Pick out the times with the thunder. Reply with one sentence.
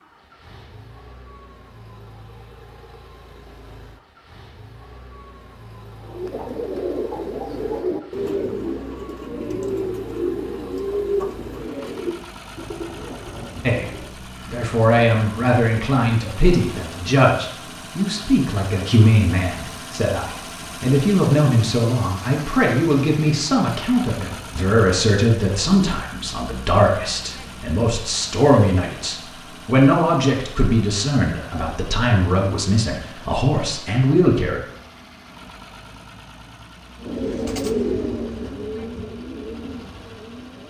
You can't hear the thunder here.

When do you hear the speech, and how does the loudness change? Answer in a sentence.
The speech can be heard from 13.6 to 34.6 s, at a steady volume.